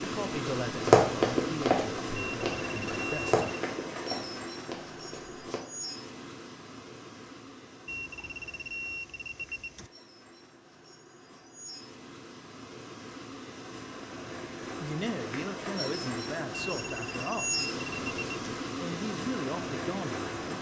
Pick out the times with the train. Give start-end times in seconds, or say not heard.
0.0-20.5.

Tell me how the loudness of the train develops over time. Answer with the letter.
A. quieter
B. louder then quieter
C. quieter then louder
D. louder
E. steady
C.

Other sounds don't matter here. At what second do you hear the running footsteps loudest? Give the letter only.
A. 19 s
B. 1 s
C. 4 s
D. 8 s
B.